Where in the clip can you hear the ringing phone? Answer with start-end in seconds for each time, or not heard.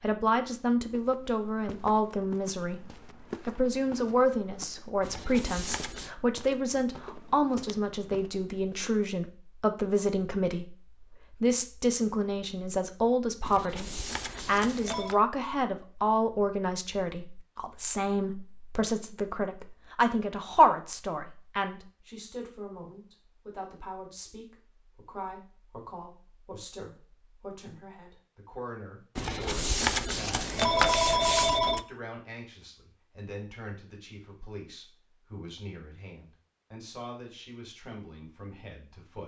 5.0-6.1, 13.4-15.2, 29.1-31.9.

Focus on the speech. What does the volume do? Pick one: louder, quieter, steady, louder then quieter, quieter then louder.
quieter.